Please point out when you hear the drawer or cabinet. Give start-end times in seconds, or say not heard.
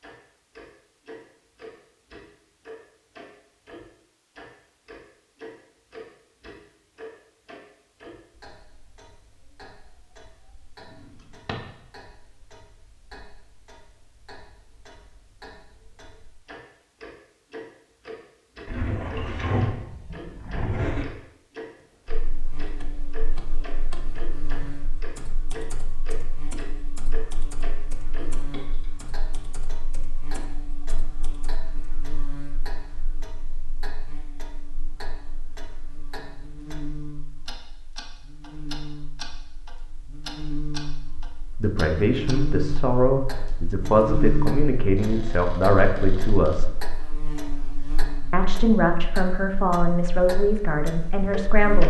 10.8-11.6, 18.6-21.1, 45.0-46.6.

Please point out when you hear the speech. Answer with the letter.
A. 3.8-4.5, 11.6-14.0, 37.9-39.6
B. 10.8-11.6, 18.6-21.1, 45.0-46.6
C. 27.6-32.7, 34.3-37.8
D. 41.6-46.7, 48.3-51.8
D.